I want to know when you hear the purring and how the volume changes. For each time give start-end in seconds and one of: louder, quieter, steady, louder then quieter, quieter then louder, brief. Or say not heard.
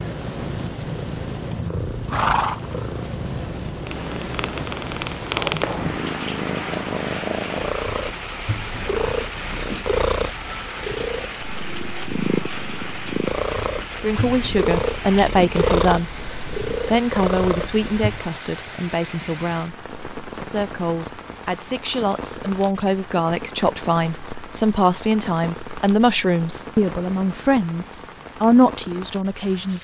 0.0-18.2 steady.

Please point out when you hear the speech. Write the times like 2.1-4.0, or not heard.
14.0-29.7.